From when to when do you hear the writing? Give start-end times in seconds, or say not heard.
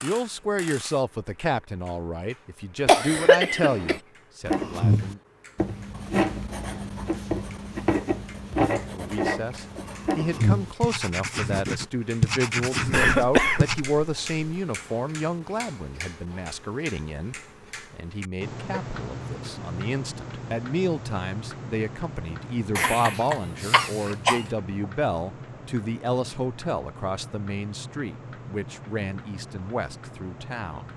4.5-13.8.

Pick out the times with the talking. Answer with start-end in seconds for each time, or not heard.
0.0-5.2, 8.9-30.9.